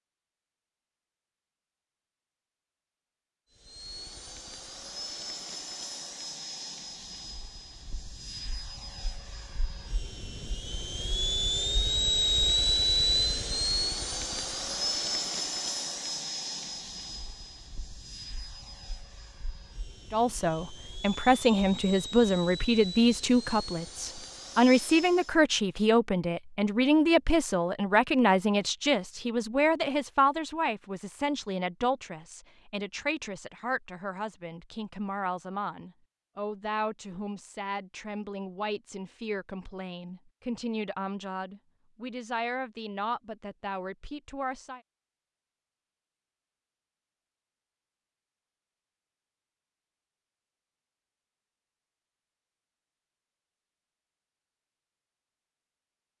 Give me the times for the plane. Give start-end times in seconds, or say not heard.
3.5-25.4.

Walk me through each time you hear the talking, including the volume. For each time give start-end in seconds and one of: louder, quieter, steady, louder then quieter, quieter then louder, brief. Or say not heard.
20.1-44.8 quieter.